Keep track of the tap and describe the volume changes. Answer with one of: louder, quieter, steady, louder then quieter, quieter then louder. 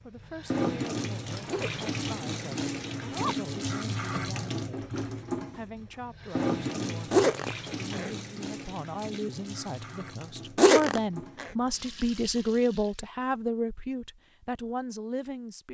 quieter.